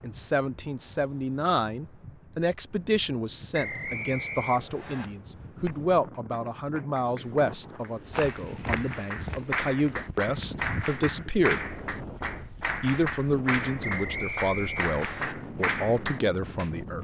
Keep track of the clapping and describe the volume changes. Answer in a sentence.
The loudness of the clapping goes up.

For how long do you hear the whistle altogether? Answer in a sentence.
The whistle can be heard for 3 seconds in total.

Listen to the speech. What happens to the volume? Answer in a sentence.
The loudness of the speech stays about the same.